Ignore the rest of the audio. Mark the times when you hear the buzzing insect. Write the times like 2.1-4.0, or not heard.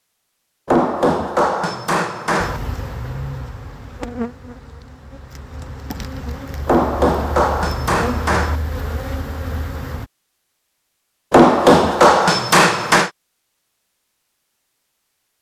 2.4-10.1.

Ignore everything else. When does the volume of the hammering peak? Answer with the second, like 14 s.
12 s.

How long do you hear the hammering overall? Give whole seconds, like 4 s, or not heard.
6 s.